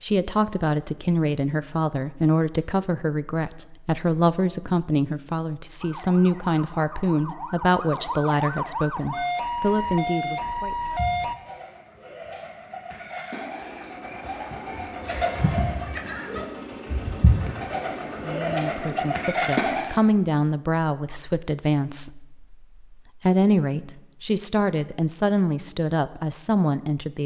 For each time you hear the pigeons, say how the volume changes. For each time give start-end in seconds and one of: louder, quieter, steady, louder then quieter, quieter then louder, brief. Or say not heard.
10.8-19.9 louder.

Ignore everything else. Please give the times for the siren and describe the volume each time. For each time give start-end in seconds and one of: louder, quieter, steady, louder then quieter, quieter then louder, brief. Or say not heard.
5.8-11.3 louder.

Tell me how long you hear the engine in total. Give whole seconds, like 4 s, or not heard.
6 s.